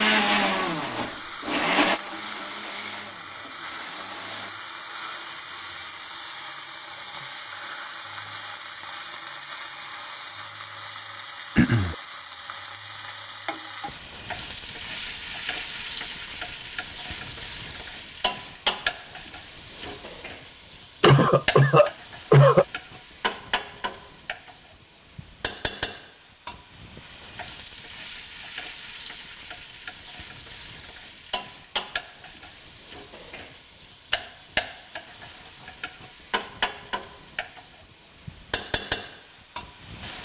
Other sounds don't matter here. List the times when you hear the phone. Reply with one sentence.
The phone can't be heard in this clip.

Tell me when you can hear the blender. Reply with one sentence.
The blender can be heard from 0.0 to 4.5 s.